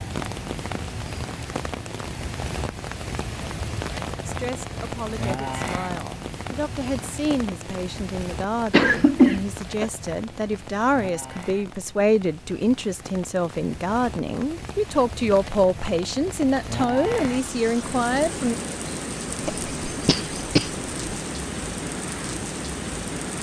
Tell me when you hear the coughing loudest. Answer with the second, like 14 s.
9 s.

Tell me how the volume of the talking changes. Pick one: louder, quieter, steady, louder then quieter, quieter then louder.
louder.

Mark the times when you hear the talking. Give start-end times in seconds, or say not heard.
4.2-18.6.